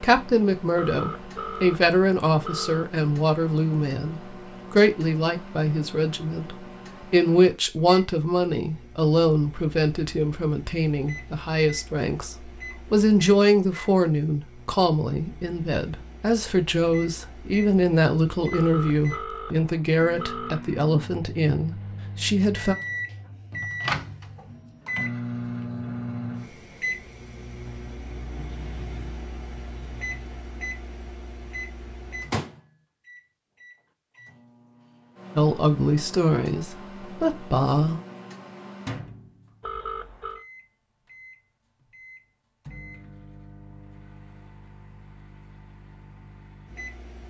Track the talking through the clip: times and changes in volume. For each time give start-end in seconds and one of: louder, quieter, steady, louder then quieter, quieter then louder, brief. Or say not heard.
0.0-22.8 steady
35.4-38.0 brief.